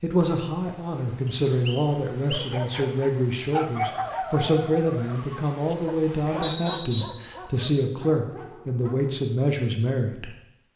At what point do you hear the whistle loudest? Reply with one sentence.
The loudest moment of the whistle is at 7 seconds.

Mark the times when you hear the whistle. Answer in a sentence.
You can hear the whistle from 1.2 to 2.5 s and from 6.4 to 7.2 s.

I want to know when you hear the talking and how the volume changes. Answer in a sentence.
You can hear the talking from 0.0 to 10.3 s, at a steady volume.